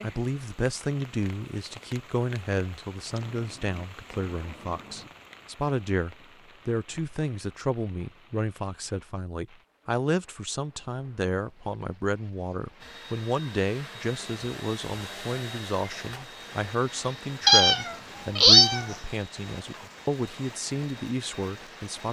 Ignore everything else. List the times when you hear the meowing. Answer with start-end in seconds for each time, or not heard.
3.0-5.1, 17.4-18.9.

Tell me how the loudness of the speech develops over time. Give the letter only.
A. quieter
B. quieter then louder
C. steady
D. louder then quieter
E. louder
C.